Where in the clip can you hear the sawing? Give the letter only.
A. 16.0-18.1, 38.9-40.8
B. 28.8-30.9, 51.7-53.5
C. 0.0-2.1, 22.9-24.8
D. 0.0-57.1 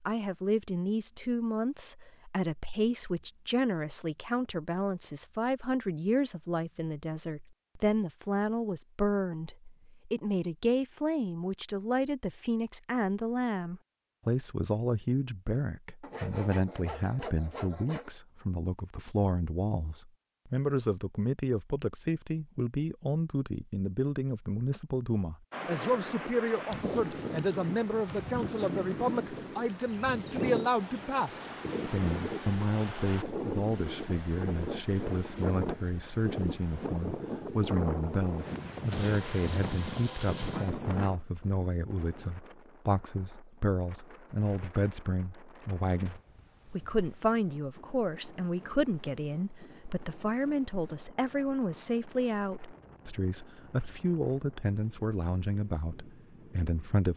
A.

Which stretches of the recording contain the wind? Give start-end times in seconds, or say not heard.
25.5-57.1.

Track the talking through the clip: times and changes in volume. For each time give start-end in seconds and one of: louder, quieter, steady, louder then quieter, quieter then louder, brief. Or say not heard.
0.0-57.1 steady.